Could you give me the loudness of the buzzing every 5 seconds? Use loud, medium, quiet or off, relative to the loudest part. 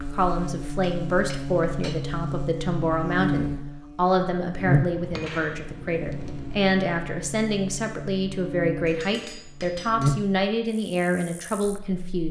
loud, medium, loud.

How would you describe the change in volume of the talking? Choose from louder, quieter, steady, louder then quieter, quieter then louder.
steady.